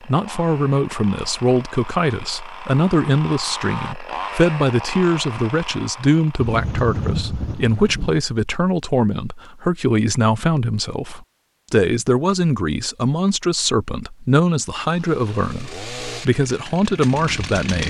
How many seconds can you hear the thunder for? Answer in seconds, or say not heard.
2 s.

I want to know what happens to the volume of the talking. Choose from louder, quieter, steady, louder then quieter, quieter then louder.
steady.